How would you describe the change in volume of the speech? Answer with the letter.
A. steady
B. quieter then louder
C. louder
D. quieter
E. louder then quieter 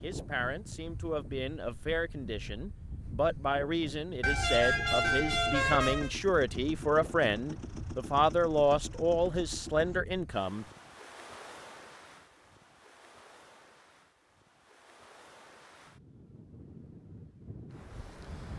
C.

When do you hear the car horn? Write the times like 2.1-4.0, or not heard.
4.2-6.1.